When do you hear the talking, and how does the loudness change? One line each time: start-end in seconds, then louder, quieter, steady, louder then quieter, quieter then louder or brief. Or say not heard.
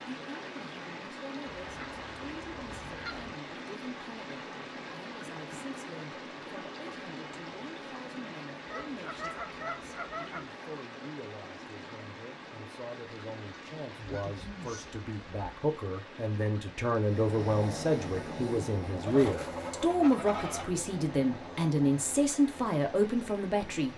0.2-23.9 louder.